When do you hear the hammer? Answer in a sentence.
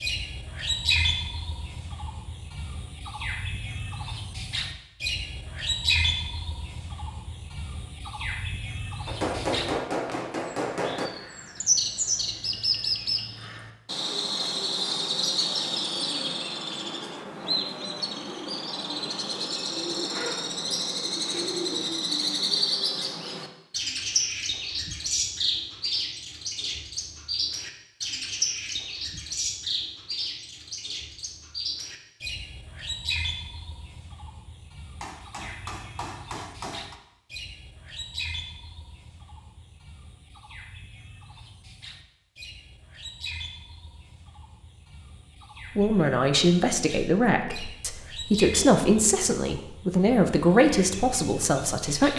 You can hear the hammer from 9.1 to 11.1 s and from 35.0 to 37.0 s.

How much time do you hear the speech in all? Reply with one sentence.
You can hear the speech for 6 seconds altogether.